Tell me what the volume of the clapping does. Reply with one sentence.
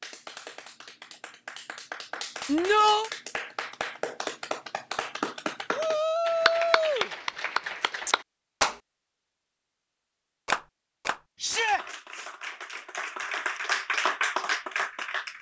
The loudness of the clapping goes up.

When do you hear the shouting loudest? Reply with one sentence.
The volume of the shouting peaks at 3 seconds.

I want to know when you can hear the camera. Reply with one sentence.
The camera can't be heard in this clip.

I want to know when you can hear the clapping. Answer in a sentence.
The clapping can be heard from 0.0 to 8.8 s and from 10.4 to 15.3 s.